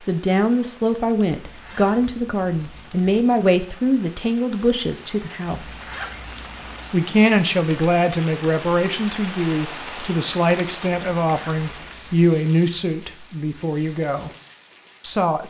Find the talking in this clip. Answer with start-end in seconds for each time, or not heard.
0.0-5.8, 6.9-14.3, 15.0-15.4.